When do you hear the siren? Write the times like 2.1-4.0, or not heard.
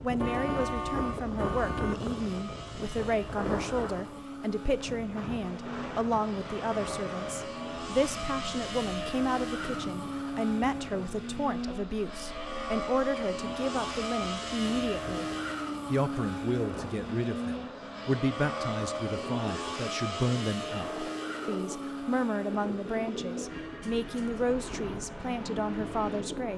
not heard.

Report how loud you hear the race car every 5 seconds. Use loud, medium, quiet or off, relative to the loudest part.
medium, loud, loud, loud, loud, medium.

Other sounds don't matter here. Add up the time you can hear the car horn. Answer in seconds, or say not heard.
2 s.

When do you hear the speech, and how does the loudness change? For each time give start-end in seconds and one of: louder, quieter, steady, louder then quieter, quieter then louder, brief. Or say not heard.
0.0-15.2 steady
15.9-26.5 steady.